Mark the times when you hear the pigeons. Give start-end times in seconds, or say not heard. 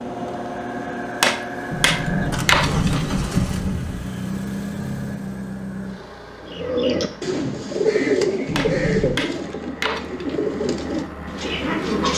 6.4-12.1.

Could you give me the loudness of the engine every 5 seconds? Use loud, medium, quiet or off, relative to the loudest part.
loud, medium, medium.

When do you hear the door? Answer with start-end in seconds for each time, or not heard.
1.7-4.0, 8.4-9.2.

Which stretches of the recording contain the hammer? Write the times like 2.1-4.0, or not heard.
1.2-3.0, 8.6-10.3.